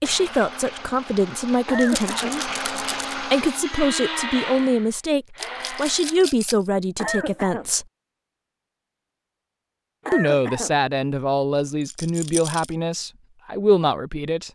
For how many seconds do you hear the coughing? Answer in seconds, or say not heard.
2 s.